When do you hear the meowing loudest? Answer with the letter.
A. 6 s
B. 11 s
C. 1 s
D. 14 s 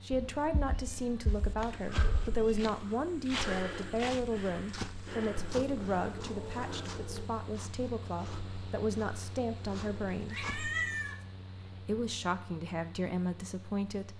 B.